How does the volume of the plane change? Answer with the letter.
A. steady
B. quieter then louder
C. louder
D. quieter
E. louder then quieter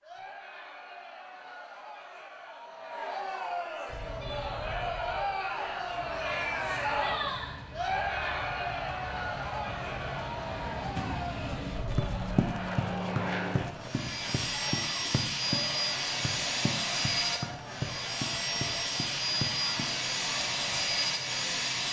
C.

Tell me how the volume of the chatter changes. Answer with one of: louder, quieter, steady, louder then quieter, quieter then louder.
louder then quieter.